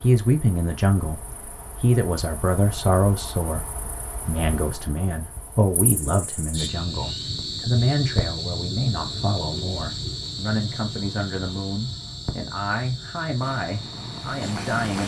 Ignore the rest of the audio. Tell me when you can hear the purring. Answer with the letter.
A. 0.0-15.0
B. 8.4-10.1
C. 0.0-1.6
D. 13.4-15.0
D.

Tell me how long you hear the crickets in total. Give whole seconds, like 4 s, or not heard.
15 s.